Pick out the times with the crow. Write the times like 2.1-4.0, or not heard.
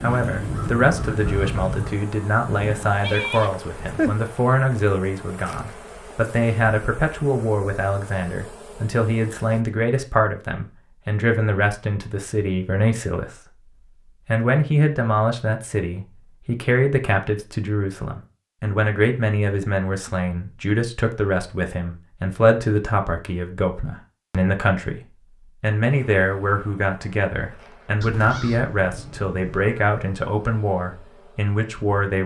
0.0-3.0, 28.0-29.9.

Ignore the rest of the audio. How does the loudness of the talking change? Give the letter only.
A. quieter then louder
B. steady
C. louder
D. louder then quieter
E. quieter
B.